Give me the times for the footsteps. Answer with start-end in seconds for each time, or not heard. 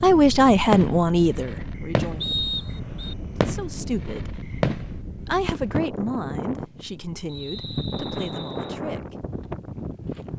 not heard.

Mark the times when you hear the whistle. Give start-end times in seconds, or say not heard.
2.2-3.1, 7.2-8.8.